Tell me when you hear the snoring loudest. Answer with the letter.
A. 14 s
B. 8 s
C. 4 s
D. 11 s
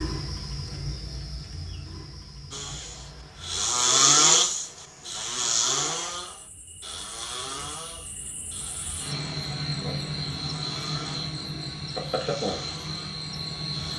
C.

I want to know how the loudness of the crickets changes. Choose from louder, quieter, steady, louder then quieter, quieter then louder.
quieter then louder.